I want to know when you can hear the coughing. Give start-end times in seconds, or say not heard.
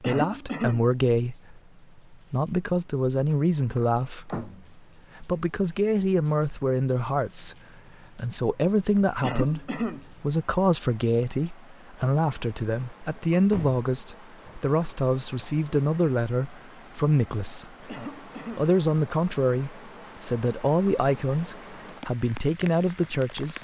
0.0-0.8, 9.2-10.1, 17.9-18.7.